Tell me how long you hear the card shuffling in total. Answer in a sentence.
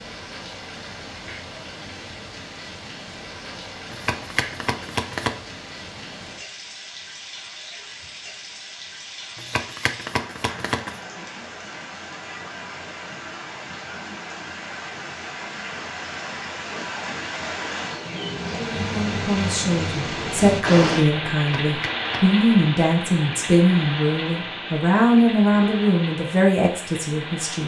You can hear the card shuffling for 4 seconds altogether.